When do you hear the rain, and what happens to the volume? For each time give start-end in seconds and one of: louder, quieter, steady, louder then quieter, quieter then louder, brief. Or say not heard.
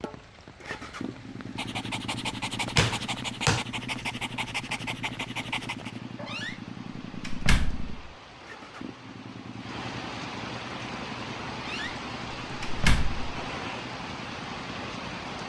0.0-15.4 louder.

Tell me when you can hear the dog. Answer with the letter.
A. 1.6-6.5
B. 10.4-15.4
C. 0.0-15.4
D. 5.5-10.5
A.